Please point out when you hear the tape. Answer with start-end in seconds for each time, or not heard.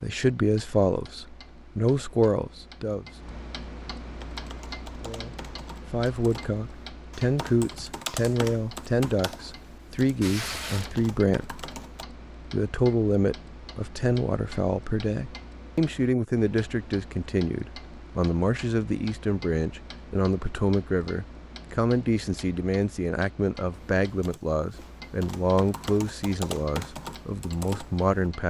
10.2-11.1.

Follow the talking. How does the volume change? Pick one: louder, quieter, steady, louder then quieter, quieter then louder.
steady.